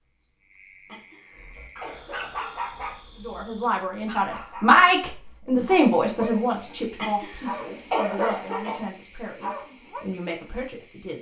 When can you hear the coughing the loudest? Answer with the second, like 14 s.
8 s.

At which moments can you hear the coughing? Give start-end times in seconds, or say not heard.
0.8-2.5, 7.0-8.8.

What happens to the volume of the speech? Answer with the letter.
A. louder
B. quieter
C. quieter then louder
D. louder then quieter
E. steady
B.